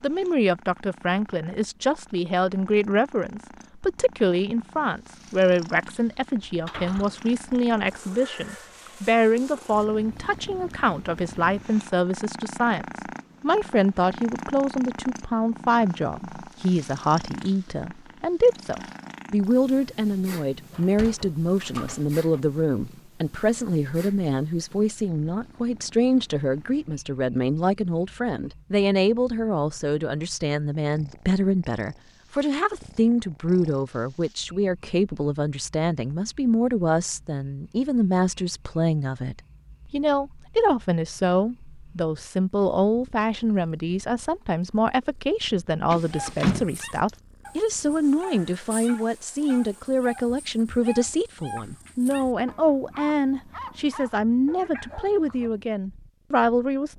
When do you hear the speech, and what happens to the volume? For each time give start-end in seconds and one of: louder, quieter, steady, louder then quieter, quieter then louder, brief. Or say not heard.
0.0-56.9 steady.